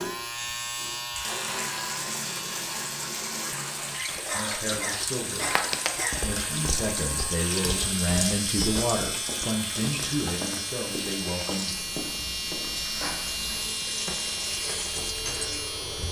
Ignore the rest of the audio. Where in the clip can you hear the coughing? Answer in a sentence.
The coughing can be heard from 4.2 to 6.2 s.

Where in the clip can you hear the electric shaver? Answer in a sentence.
The electric shaver can be heard from 0.0 to 16.0 s.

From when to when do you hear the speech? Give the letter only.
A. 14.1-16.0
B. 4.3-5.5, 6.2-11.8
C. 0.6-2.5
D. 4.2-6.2
B.